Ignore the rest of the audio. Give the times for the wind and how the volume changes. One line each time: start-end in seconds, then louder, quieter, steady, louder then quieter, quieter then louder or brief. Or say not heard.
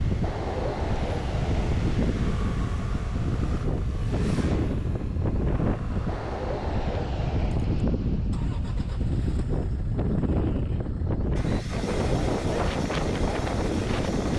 0.0-14.3 steady.